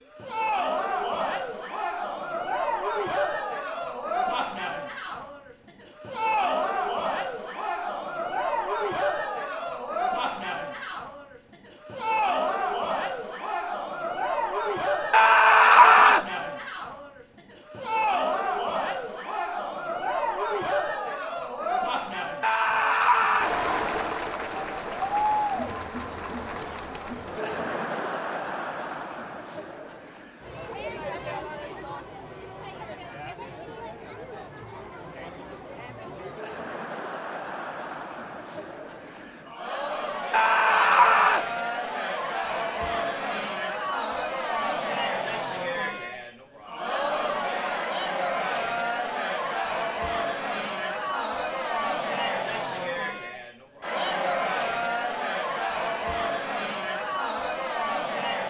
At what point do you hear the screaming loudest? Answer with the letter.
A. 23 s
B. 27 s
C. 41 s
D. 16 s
D.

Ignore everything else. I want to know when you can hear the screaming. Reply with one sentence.
The screaming can be heard from 15.1 to 16.2 s, from 22.4 to 23.6 s and from 40.3 to 41.5 s.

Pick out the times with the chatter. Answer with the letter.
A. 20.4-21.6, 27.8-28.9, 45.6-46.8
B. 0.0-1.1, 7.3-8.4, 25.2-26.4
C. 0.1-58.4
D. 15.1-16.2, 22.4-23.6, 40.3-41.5
C.